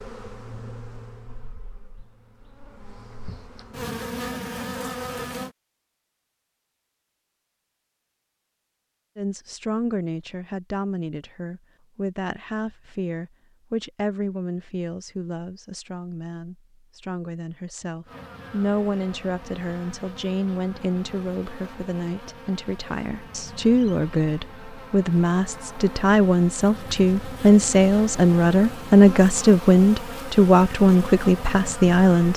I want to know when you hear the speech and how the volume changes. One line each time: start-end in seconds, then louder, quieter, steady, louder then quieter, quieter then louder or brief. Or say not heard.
9.2-32.3 louder.